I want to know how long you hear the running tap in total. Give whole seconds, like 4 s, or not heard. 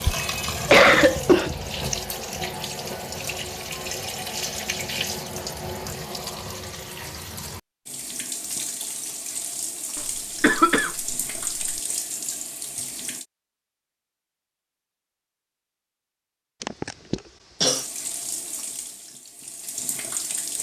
16 s.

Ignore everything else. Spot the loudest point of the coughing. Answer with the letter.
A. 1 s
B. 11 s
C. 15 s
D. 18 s
A.